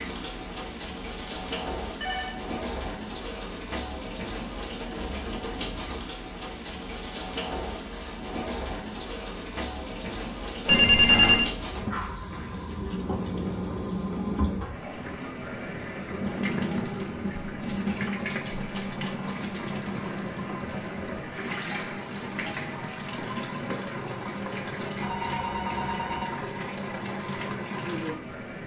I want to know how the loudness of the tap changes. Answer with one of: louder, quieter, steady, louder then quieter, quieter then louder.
steady.